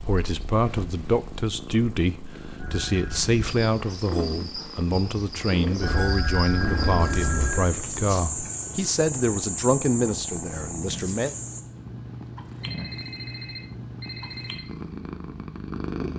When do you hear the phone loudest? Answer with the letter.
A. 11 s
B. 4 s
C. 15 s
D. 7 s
D.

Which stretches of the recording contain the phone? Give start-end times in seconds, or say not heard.
2.5-3.3, 5.8-7.7, 12.6-14.7.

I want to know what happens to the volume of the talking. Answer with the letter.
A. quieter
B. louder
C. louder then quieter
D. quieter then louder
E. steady
E.